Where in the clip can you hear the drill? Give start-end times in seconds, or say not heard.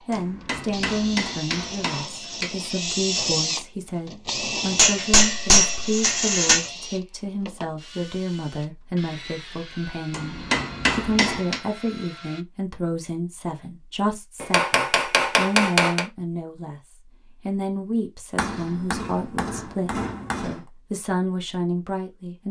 0.0-12.4.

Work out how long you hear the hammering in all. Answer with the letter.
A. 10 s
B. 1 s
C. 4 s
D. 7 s
A.